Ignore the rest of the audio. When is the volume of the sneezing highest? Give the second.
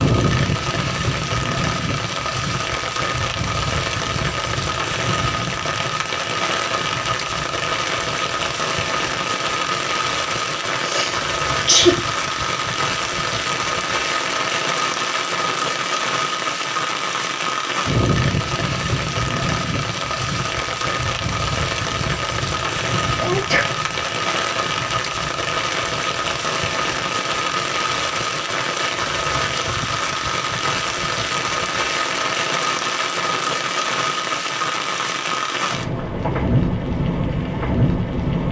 12 s.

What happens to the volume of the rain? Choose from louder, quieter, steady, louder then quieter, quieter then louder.
steady.